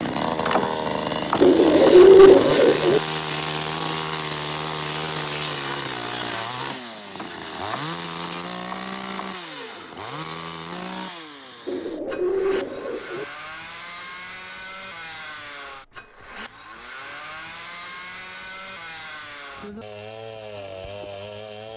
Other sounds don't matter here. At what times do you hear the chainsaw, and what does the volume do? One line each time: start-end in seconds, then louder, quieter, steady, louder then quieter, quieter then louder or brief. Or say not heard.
0.0-21.7 quieter.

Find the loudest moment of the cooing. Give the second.
2 s.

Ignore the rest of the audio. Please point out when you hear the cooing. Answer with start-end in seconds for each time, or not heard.
1.4-3.0, 11.7-13.2.